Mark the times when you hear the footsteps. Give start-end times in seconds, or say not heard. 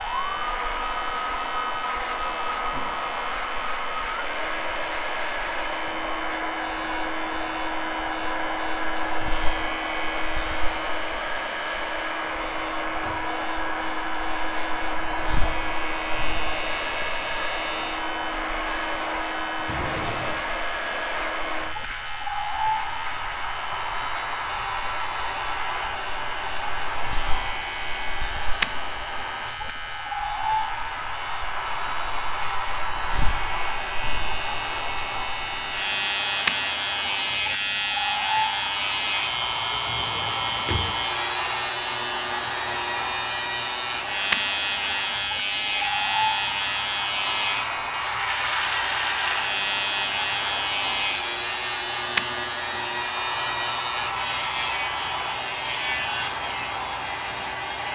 not heard.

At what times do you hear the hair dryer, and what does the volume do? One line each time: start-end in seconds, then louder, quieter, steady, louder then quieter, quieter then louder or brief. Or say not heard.
0.0-57.8 steady.